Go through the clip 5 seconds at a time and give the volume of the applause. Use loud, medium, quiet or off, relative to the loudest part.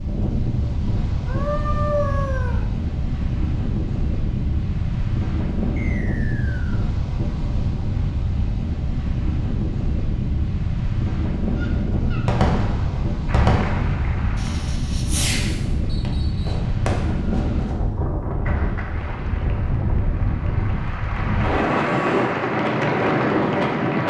off, off, medium, medium, loud.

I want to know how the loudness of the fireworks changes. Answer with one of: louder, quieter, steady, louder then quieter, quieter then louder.
quieter.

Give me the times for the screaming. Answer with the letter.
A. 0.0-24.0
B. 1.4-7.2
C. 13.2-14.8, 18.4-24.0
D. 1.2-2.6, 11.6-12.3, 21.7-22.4
D.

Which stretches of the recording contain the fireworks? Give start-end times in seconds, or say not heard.
11.9-17.8.